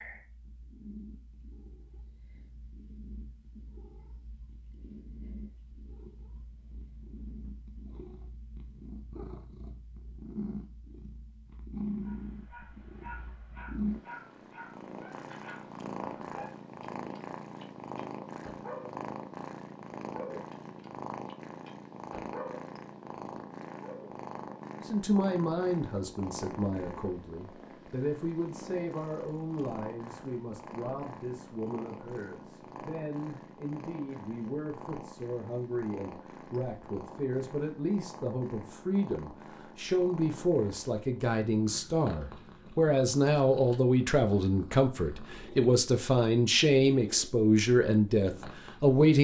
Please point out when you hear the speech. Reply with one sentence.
You can hear the speech from 24.8 to 49.1 s.